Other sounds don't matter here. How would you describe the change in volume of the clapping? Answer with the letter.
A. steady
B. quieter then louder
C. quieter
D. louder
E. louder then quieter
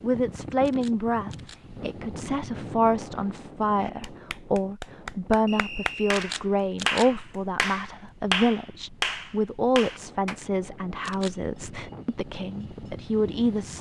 D.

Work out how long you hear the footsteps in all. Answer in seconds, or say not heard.
not heard.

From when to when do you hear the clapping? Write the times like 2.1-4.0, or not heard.
3.8-10.3.